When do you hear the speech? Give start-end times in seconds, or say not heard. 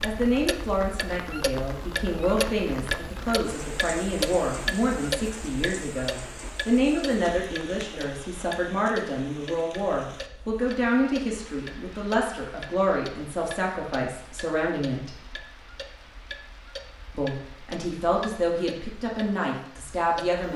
0.0-15.2, 17.1-20.5.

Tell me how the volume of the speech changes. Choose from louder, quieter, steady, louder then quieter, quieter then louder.
steady.